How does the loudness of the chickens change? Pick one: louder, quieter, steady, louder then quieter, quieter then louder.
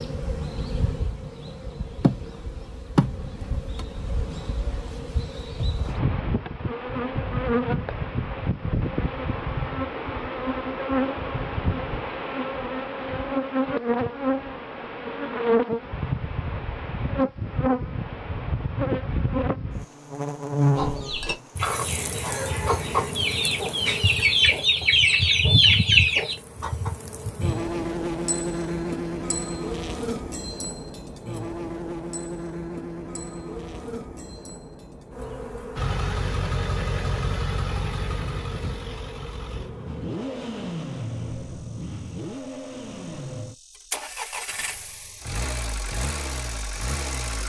louder.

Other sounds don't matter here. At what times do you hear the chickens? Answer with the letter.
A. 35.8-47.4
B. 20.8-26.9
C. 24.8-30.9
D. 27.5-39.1
B.